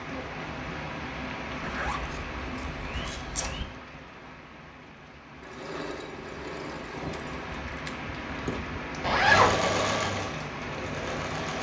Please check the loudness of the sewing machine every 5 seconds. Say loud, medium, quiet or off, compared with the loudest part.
off, loud, loud.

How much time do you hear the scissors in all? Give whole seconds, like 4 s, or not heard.
3 s.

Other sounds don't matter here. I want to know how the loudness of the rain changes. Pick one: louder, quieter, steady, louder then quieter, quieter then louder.
quieter then louder.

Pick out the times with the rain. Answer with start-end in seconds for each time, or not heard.
0.0-11.5.